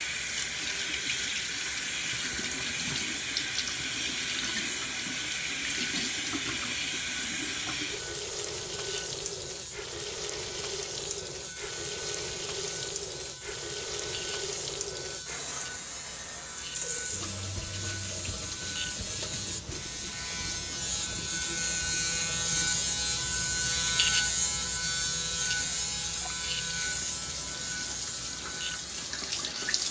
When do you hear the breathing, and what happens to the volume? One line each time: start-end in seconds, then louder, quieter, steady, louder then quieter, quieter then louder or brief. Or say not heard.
not heard.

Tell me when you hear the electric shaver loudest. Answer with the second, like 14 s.
24 s.